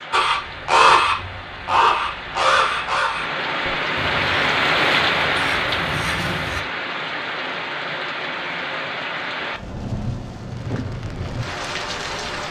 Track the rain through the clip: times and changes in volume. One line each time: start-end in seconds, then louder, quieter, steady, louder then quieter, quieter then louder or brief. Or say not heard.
0.0-12.4 louder then quieter.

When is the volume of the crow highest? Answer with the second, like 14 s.
1 s.